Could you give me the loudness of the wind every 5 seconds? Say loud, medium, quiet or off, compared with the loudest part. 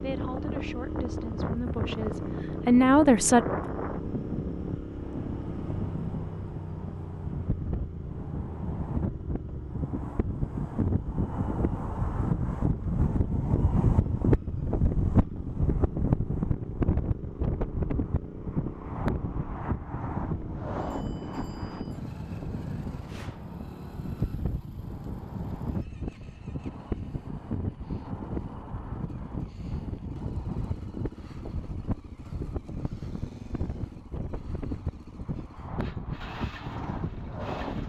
medium, medium, loud, loud, medium, medium, medium, medium.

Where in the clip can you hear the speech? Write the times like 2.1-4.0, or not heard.
0.0-3.5.